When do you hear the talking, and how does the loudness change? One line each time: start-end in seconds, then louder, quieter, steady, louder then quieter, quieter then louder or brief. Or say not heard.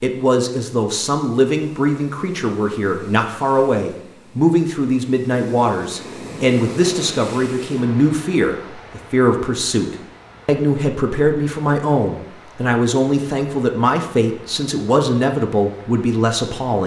0.0-16.8 steady.